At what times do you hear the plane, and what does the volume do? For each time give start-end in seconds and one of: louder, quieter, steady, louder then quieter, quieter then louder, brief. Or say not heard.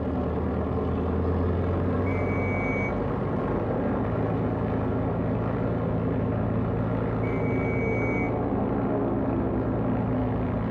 0.0-10.6 steady.